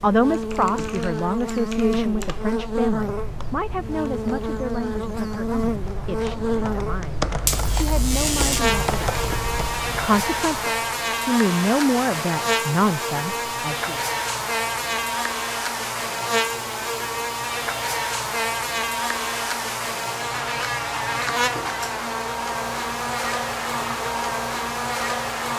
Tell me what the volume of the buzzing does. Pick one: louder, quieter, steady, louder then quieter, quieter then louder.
steady.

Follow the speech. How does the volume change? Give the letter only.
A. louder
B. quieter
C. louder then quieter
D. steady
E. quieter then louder
E.